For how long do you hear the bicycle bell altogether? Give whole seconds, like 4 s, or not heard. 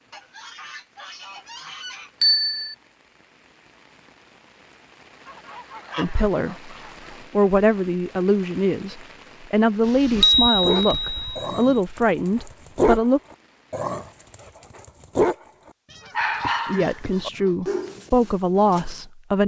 2 s.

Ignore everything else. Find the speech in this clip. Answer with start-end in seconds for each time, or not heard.
6.0-13.2, 16.6-19.4.